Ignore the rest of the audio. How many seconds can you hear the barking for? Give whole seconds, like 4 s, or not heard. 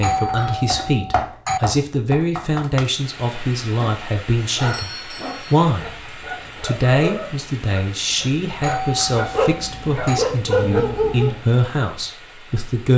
8 s.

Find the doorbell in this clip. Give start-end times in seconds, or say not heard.
0.0-1.6, 4.5-5.7, 8.6-10.2.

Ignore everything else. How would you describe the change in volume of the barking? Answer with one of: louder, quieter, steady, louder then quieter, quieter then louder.
louder.